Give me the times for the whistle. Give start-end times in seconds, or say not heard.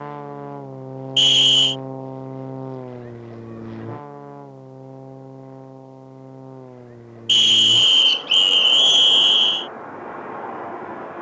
1.1-1.8, 7.2-9.7.